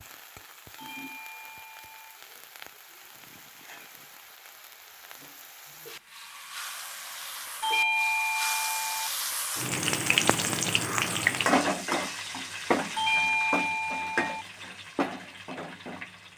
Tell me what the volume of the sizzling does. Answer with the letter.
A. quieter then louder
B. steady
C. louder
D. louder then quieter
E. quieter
D.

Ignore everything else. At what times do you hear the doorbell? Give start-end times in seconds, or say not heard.
0.8-2.2, 7.6-9.1, 12.9-14.4.